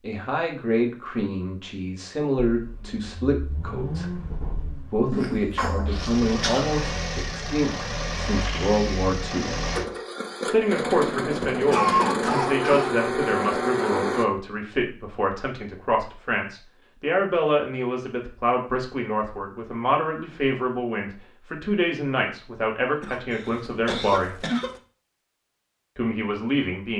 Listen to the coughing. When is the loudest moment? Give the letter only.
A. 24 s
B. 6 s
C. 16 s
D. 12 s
D.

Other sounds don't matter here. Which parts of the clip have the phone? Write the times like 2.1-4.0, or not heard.
not heard.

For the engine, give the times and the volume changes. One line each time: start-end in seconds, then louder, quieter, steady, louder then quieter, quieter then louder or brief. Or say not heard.
2.5-14.2 louder.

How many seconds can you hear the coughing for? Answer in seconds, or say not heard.
5 s.